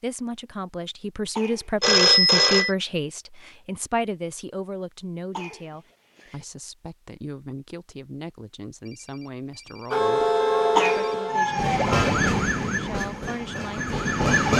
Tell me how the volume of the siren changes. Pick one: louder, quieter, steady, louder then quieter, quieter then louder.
quieter.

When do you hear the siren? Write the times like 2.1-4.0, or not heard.
9.9-14.5.